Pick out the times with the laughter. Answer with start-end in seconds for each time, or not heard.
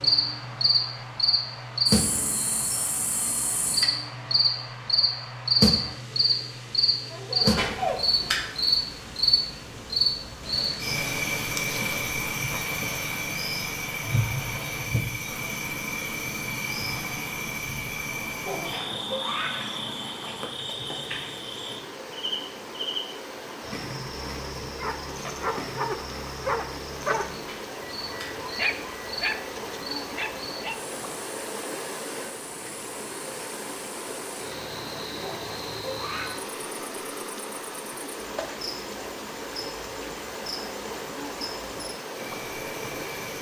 7.1-8.2, 18.4-19.6, 35.2-36.3.